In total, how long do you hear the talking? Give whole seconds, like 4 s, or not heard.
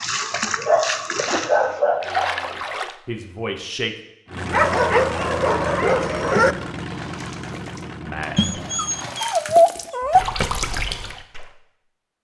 3 s.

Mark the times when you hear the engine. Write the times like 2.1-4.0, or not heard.
4.2-9.1.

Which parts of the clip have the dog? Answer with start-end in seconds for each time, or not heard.
0.7-2.1, 4.5-6.5, 8.3-10.2.